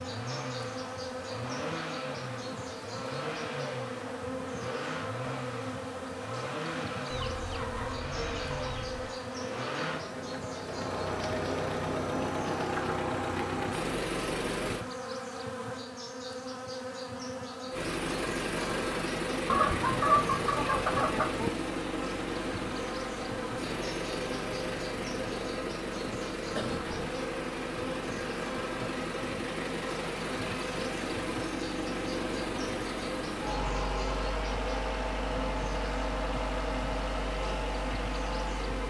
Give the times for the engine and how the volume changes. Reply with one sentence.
You can hear the engine from 0.0 to 14.8 s, getting louder; and from 17.7 to 38.8 s, at a steady volume.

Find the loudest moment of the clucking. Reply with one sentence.
The loudest moment of the clucking is at 20 seconds.